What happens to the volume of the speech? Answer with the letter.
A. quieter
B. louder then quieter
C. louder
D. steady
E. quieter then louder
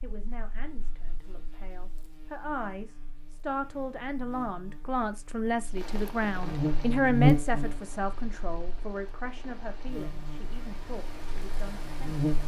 B.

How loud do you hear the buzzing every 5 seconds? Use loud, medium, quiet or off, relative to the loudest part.
quiet, loud, medium.